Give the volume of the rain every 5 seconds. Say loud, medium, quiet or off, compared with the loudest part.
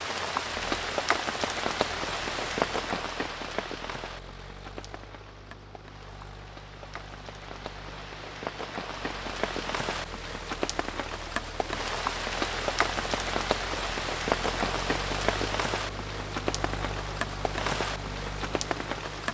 loud, medium, loud, loud.